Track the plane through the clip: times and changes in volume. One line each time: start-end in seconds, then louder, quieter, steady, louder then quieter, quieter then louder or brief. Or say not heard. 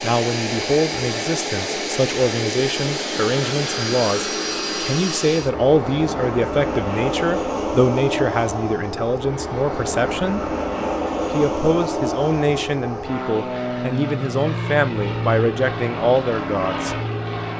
0.0-17.5 steady.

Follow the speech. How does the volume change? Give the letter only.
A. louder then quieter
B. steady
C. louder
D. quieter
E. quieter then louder
B.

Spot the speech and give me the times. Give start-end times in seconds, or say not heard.
0.0-10.5, 11.3-16.9.